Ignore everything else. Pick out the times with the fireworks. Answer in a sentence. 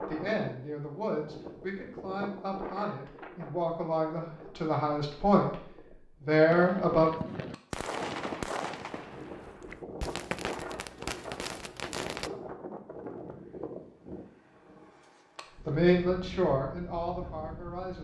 The fireworks can be heard from 6.5 to 12.3 s.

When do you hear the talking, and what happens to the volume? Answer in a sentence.
You can hear the talking from 0.1 to 7.1 s, getting louder; and briefly from 15.6 to 17.9 s.